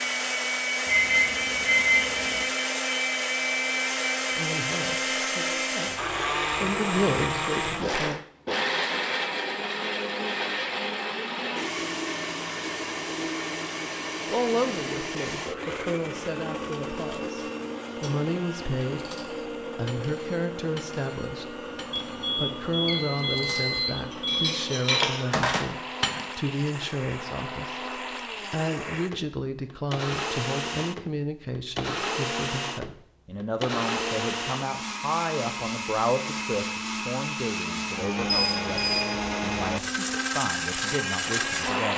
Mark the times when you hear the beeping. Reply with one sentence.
You can hear the beeping from 0.8 to 2.5 s, from 21.9 to 24.5 s and from 37.6 to 39.1 s.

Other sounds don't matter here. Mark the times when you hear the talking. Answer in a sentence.
You can hear the talking from 4.3 to 8.2 s and from 14.2 to 41.9 s.